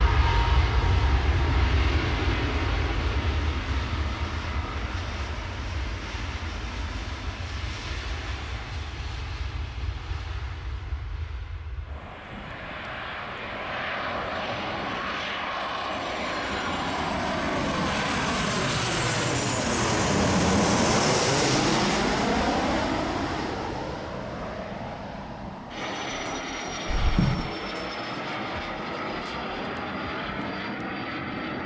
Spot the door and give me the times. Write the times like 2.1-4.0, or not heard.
26.9-27.5.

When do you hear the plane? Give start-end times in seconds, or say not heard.
0.0-31.6.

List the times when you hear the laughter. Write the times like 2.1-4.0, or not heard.
not heard.